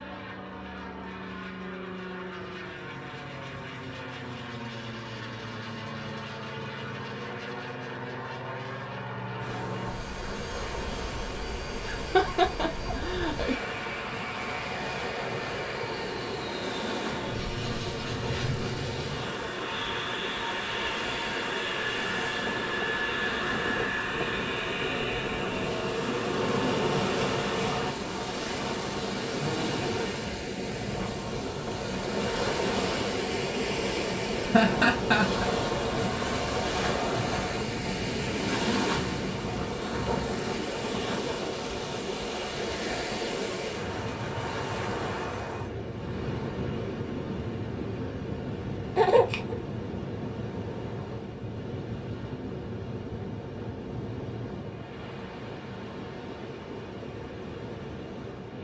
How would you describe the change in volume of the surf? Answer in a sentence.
The loudness of the surf goes up, then down.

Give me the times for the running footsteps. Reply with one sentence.
You can't hear the running footsteps here.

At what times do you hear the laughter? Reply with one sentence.
You can hear the laughter from 11.8 to 13.6 s, from 34.4 to 35.5 s and from 49.0 to 49.5 s.